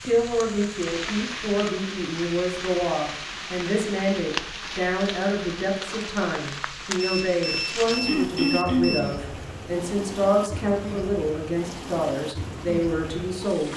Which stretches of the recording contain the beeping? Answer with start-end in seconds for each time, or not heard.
7.0-9.0.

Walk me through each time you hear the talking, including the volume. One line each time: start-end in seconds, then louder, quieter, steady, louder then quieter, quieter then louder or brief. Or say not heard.
0.0-13.7 steady.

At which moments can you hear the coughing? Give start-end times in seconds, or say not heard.
8.1-9.1.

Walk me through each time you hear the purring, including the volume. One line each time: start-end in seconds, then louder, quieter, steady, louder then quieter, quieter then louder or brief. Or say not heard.
not heard.